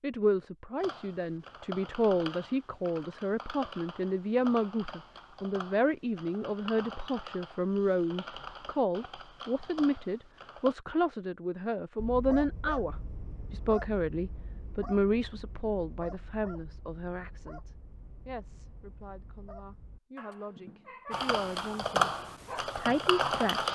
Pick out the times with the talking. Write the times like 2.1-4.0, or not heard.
0.0-23.7.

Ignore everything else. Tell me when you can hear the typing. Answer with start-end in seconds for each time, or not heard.
0.8-10.8, 21.1-23.7.